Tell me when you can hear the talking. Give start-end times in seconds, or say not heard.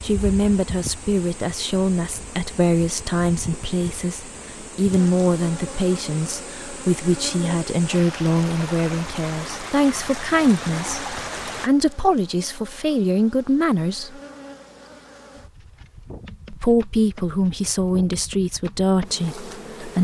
0.0-14.2, 16.5-20.0.